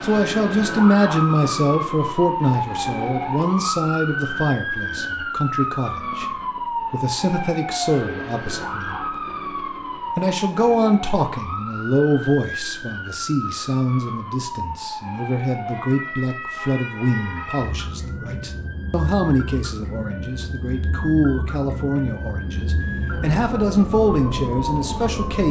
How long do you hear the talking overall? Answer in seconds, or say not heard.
24 s.